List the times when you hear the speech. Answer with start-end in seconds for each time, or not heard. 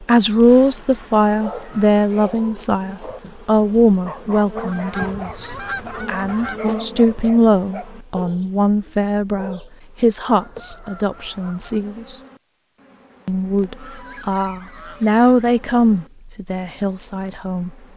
0.0-12.2, 13.2-17.7.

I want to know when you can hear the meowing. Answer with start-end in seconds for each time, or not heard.
not heard.